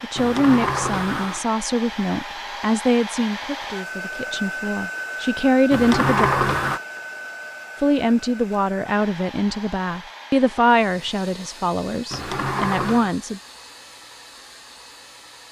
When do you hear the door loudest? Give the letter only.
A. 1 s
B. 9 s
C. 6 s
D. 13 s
C.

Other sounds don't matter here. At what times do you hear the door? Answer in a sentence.
The door can be heard from 0.1 to 1.4 s, from 5.7 to 6.8 s and from 12.1 to 13.2 s.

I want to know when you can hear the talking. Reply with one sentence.
The talking can be heard from 0.0 to 6.3 s and from 7.8 to 13.4 s.